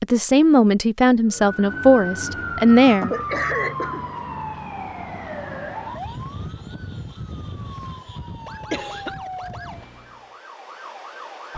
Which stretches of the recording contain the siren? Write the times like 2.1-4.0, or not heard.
1.2-11.5.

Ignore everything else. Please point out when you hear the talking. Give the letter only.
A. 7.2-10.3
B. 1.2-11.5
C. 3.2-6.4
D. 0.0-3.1
D.